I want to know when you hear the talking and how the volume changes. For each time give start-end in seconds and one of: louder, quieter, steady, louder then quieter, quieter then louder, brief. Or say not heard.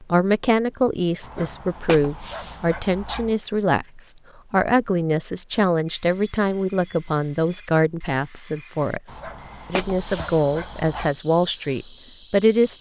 0.0-12.7 steady.